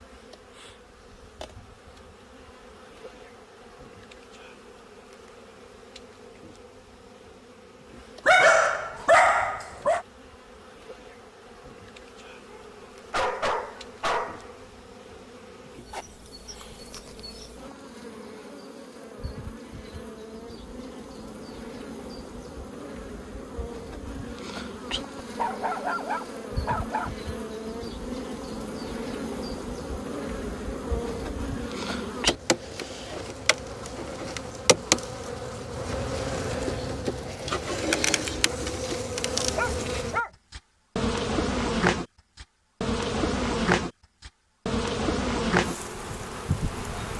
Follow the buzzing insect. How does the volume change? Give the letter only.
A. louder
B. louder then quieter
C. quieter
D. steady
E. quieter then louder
A.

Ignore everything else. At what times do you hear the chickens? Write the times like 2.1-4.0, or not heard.
not heard.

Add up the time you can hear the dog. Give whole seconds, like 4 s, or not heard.
6 s.